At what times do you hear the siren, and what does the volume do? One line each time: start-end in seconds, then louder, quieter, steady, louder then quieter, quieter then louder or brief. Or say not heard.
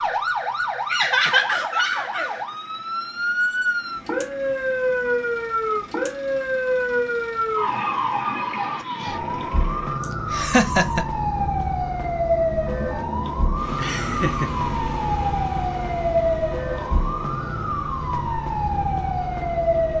0.0-19.9 steady.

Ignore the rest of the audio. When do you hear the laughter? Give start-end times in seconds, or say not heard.
0.9-2.4, 10.0-11.1, 13.8-14.5.